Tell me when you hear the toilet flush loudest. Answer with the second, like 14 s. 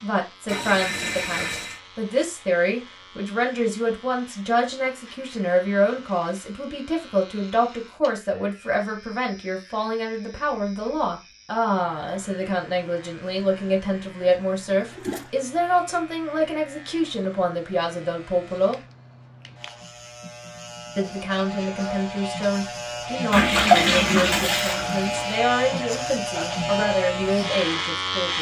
24 s.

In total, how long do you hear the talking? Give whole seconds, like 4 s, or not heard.
26 s.